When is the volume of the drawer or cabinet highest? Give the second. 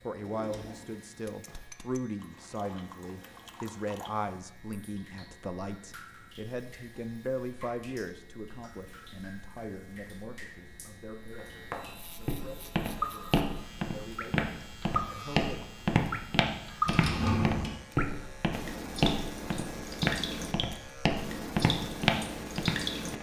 17 s.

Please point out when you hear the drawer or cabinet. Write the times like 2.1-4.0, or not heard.
0.1-1.6, 16.9-17.8.